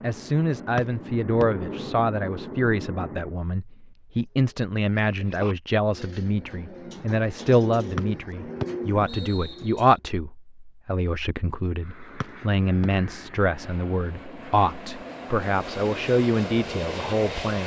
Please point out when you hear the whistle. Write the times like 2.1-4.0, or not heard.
0.8-1.4, 8.0-9.8, 12.2-12.9.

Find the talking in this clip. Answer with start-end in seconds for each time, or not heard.
0.0-17.6.